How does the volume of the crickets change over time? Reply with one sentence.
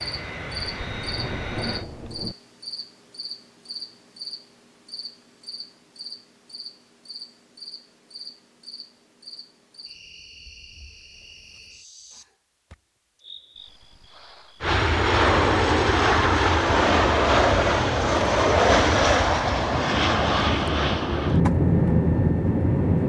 The loudness of the crickets goes down.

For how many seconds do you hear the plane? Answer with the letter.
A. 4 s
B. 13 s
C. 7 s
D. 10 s
D.